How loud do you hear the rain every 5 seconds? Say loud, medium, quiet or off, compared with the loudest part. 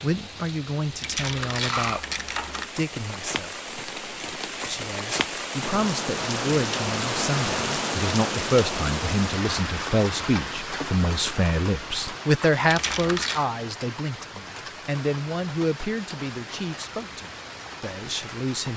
medium, loud, medium, medium.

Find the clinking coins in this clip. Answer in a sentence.
The clinking coins can be heard from 1.0 to 2.7 s and from 12.7 to 13.4 s.